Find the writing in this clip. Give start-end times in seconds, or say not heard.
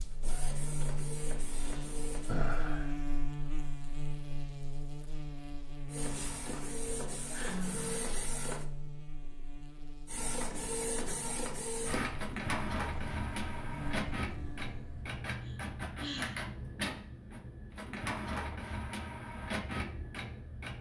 not heard.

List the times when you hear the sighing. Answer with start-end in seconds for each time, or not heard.
1.6-2.9, 7.3-8.1, 15.4-16.4.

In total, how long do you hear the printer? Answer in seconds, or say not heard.
16 s.